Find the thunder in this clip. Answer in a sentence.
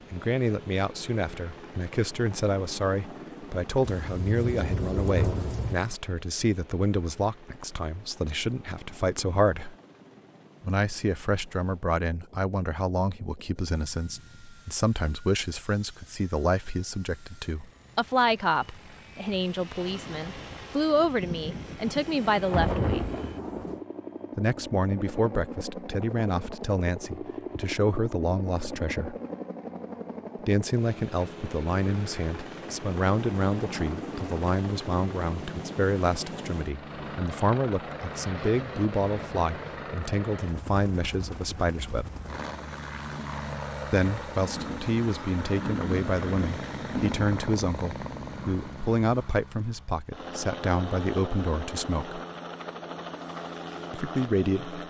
The thunder can be heard from 3.9 to 5.8 s, from 21.2 to 23.8 s and from 44.4 to 49.0 s.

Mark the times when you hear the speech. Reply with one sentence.
The speech can be heard from 0.1 to 9.8 s, from 10.6 to 23.2 s, from 24.4 to 29.1 s, from 30.4 to 42.1 s, from 43.9 to 52.2 s and from 53.9 to 54.8 s.